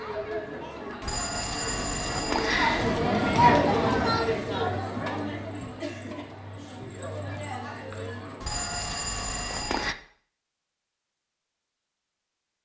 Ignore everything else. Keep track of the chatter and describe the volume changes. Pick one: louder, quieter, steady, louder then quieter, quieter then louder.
louder then quieter.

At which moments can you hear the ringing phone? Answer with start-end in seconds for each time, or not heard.
1.0-3.0, 8.4-9.9.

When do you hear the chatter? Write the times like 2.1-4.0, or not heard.
0.0-8.4.